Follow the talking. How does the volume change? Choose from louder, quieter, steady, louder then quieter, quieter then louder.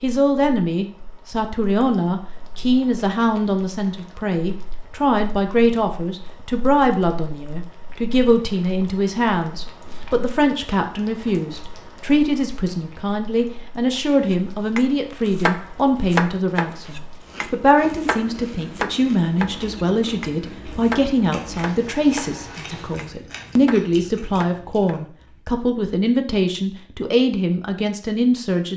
steady.